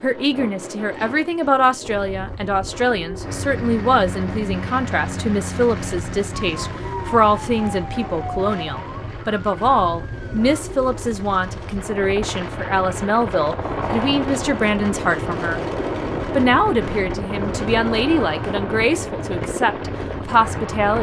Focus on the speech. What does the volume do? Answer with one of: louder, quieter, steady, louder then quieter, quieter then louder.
steady.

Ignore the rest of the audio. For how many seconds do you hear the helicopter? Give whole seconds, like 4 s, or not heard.
18 s.